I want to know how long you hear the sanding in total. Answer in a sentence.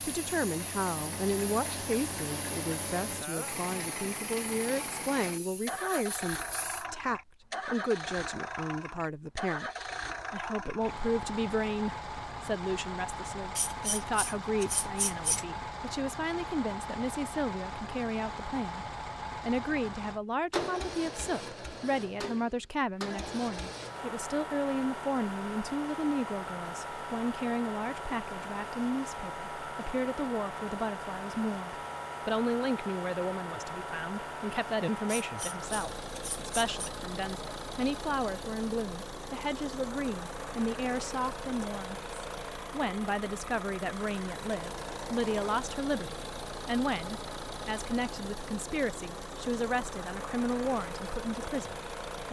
The sanding can't be heard in this clip.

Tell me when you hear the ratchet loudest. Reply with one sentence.
The loudest moment of the ratchet is at 15 seconds.